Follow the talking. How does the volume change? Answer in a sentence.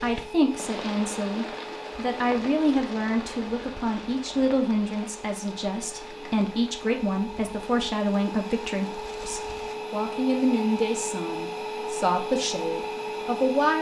The loudness of the talking stays about the same.